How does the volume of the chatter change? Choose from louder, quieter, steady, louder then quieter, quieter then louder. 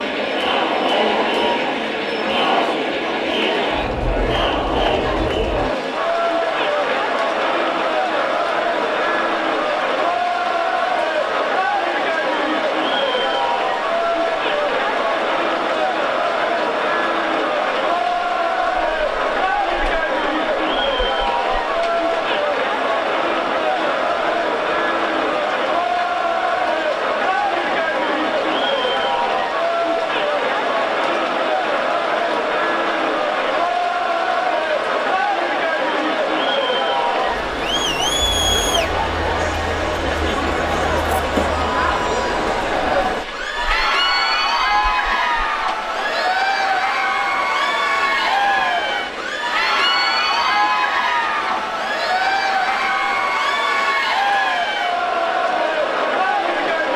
steady.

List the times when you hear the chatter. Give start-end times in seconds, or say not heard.
0.0-56.9.